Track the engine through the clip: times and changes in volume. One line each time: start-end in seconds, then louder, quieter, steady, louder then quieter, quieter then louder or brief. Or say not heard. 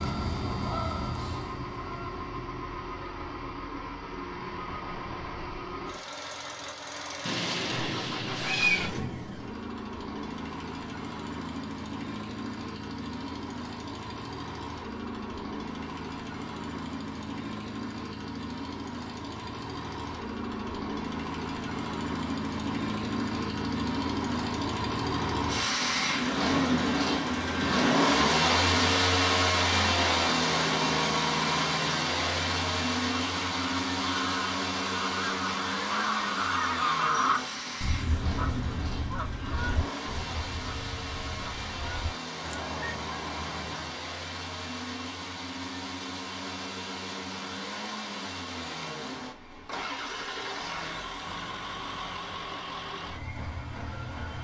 0.0-54.4 louder then quieter.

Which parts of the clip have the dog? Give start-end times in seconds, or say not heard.
not heard.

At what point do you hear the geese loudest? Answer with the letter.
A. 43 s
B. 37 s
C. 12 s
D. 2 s
B.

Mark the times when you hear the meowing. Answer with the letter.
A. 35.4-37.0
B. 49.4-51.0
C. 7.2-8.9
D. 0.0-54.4
C.